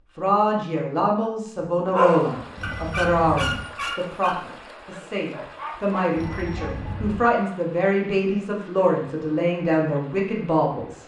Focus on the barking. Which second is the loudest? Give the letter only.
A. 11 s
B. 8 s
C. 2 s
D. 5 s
C.